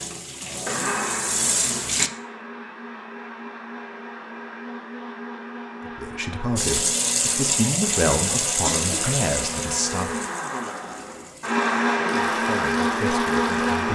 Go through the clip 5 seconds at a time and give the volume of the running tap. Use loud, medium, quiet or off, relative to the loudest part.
loud, loud, quiet.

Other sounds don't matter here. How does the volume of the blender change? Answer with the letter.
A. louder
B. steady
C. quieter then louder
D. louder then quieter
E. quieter
A.